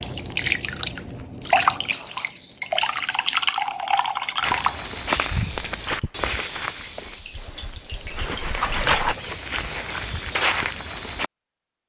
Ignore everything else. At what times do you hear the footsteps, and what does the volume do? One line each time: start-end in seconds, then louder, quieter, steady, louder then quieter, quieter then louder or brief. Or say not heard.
4.4-11.3 quieter then louder.